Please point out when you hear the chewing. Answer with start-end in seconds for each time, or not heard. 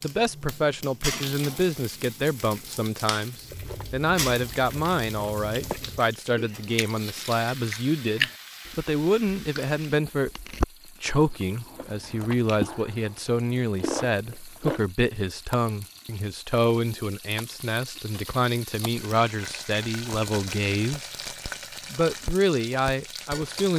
3.4-14.8.